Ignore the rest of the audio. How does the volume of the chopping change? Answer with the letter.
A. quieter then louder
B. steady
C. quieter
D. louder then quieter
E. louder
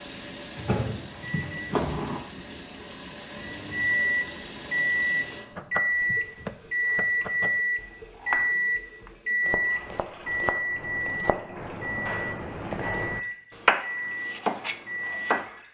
E.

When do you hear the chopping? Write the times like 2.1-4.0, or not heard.
5.5-15.5.